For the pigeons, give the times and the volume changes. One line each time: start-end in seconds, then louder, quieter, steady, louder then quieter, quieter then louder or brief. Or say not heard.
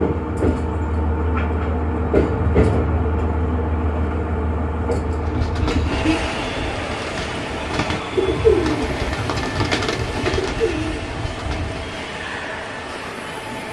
5.0-12.0 louder then quieter.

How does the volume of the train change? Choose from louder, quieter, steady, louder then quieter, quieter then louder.
quieter.